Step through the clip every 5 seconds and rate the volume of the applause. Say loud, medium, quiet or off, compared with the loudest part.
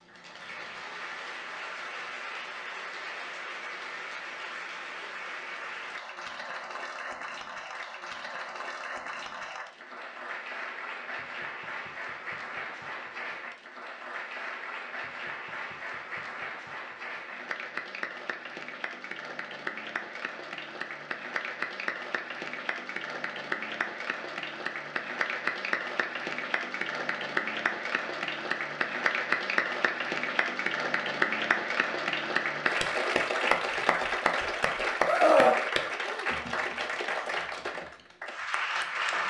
medium, medium, medium, medium, medium, loud, loud, loud.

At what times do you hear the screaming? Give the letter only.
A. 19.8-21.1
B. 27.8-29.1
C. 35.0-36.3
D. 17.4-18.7
C.